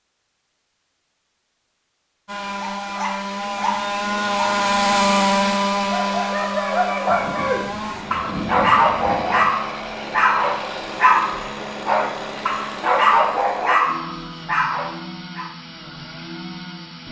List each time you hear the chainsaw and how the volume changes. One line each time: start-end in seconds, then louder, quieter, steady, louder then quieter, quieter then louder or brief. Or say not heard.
2.2-17.0 quieter.